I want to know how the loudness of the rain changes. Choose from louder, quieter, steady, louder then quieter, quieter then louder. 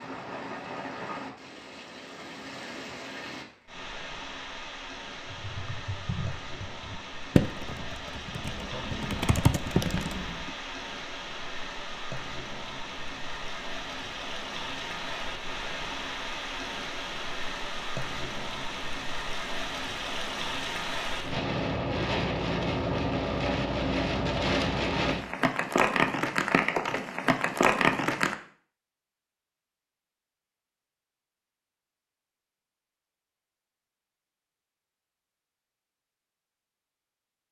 louder.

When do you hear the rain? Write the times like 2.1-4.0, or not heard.
0.0-28.4.